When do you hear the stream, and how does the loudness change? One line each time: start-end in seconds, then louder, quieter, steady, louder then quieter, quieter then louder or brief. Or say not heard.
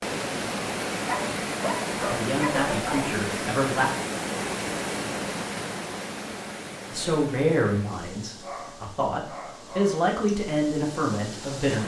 0.0-11.8 quieter.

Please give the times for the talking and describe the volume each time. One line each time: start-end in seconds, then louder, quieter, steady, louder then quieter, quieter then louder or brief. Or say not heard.
2.0-3.9 brief
6.9-11.8 quieter then louder.